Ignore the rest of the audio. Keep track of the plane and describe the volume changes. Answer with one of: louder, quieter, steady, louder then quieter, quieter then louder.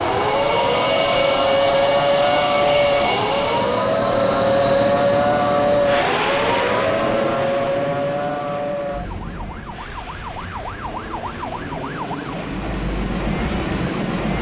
quieter then louder.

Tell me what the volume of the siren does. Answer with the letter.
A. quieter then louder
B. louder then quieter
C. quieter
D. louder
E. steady
C.